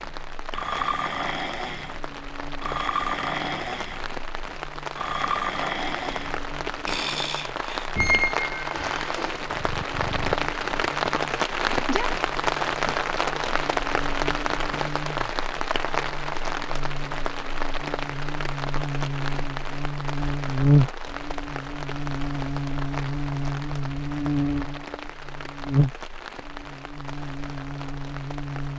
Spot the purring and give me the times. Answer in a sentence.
The purring can't be heard in this clip.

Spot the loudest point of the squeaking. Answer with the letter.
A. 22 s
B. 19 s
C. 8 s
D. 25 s
C.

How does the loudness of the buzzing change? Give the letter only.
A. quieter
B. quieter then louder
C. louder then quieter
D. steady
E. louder
E.